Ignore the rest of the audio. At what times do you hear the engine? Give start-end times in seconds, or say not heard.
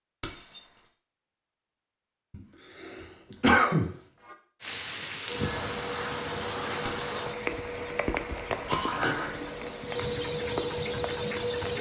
5.2-11.7.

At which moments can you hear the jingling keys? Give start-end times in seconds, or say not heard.
0.2-0.9, 6.8-7.4.